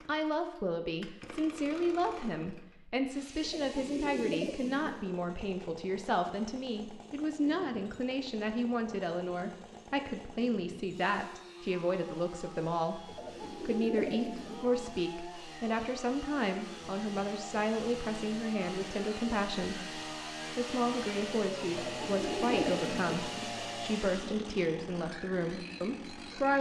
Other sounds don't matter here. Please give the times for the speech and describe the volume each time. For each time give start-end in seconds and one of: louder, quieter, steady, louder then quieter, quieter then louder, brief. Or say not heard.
0.1-26.5 steady.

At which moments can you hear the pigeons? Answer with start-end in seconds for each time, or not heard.
3.4-5.0, 13.1-15.0, 21.7-23.5.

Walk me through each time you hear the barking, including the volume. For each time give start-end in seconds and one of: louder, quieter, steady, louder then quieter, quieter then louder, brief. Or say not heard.
not heard.